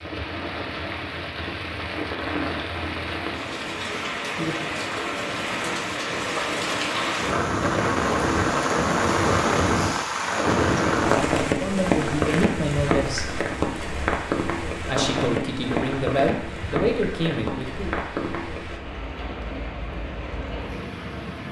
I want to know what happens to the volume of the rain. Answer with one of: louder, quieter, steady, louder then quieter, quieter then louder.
louder then quieter.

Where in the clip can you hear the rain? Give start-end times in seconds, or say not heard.
0.0-21.4.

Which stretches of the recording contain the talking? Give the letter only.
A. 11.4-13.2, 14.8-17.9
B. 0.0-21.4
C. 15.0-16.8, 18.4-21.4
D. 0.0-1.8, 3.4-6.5
A.